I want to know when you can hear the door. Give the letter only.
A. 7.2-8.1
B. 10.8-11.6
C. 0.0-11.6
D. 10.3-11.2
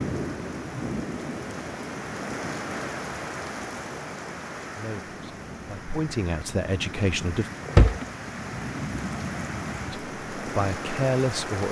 A.